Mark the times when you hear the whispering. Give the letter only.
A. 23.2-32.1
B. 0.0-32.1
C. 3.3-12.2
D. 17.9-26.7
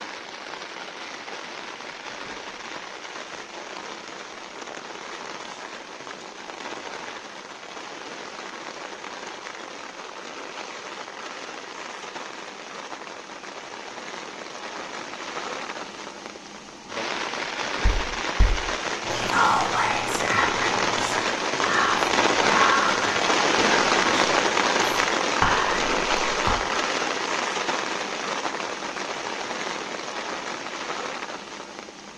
D.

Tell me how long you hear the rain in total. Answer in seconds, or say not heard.
32 s.